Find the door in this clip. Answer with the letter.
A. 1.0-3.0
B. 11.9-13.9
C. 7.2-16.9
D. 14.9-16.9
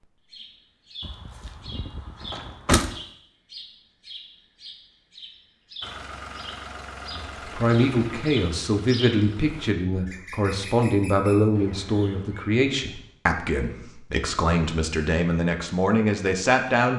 A.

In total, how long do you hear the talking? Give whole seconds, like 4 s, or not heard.
10 s.